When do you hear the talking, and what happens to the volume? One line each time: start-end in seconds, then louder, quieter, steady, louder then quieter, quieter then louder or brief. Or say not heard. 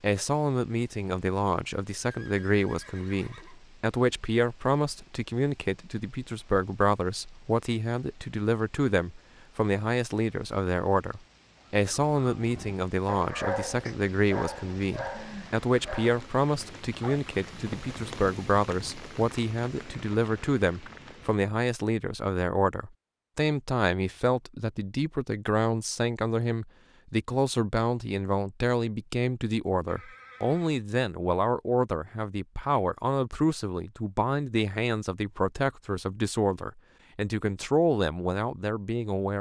0.0-39.3 steady.